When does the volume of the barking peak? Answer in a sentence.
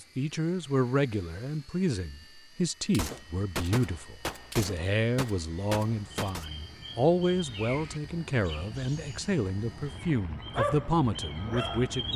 The loudest moment of the barking is at 11 seconds.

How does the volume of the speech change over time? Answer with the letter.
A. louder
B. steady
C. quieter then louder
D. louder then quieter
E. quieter
B.